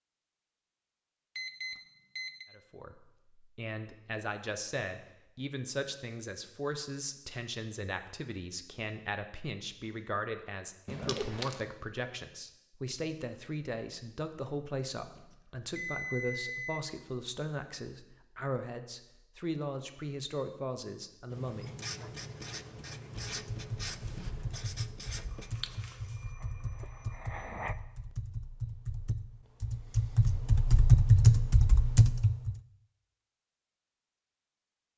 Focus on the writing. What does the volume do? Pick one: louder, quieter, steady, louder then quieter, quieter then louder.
quieter.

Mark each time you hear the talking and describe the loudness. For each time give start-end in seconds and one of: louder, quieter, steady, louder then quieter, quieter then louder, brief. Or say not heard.
2.5-22.1 steady.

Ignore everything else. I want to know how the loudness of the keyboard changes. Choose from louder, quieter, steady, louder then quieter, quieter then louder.
louder.